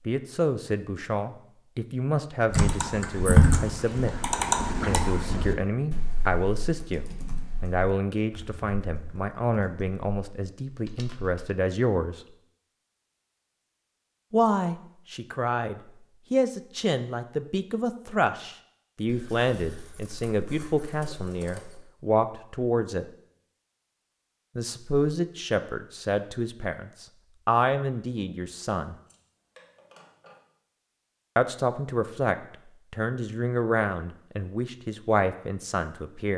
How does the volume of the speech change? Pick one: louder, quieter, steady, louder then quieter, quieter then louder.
steady.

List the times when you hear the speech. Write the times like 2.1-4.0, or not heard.
0.1-12.2, 14.3-23.1, 24.6-28.9, 31.4-36.3.